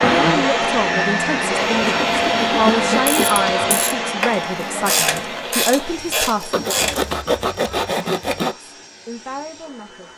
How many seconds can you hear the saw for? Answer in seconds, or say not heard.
4 s.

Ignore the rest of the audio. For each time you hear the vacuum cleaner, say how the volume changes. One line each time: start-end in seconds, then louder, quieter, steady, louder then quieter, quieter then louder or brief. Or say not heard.
0.0-10.1 quieter.